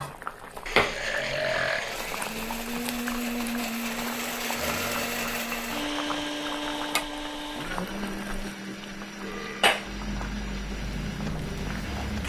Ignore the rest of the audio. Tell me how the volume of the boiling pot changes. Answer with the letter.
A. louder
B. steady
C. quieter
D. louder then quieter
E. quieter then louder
E.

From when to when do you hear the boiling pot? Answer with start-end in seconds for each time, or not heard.
0.0-12.2.